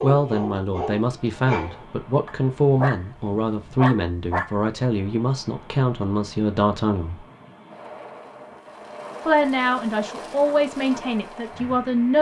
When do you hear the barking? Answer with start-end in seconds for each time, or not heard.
0.0-4.7.